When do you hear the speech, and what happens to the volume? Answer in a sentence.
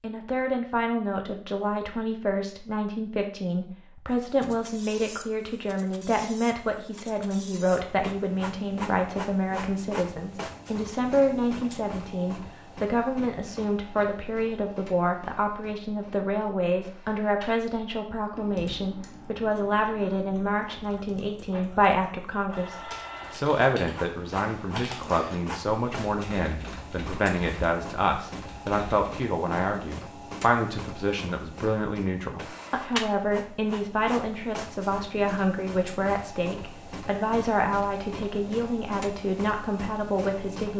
You can hear the speech from 0.0 to 40.7 s, at a steady volume.